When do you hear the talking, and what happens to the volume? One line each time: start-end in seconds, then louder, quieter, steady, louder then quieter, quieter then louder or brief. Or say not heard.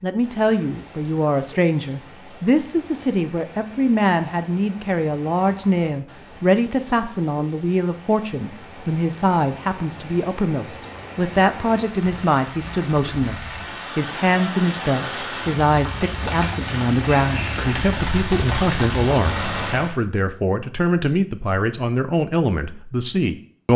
0.0-23.7 steady.